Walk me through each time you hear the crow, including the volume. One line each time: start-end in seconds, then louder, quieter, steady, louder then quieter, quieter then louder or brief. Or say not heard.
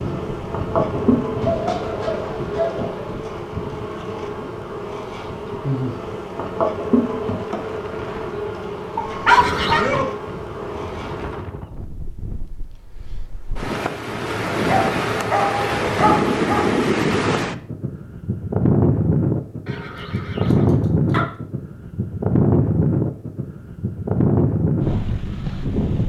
not heard.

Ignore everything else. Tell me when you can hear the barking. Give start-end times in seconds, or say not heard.
1.4-3.1, 8.9-10.1, 14.6-16.9, 19.9-21.3.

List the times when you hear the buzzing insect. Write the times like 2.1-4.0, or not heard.
0.0-11.4.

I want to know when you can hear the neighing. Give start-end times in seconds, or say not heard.
9.2-9.9, 19.6-20.8.